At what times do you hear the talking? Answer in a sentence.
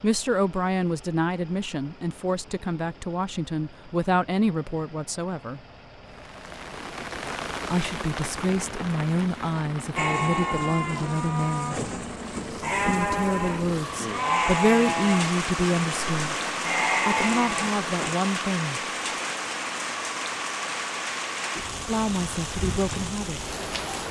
You can hear the talking from 0.0 to 5.6 s, from 7.7 to 11.8 s, from 12.8 to 16.4 s, from 17.1 to 18.8 s and from 21.9 to 23.4 s.